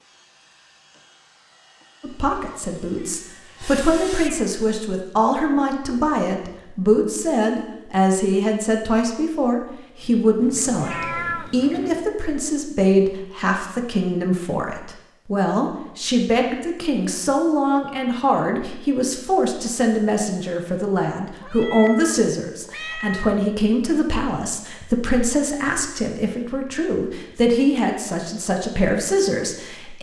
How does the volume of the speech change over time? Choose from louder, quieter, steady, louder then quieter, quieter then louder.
steady.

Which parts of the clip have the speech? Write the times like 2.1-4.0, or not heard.
2.0-29.9.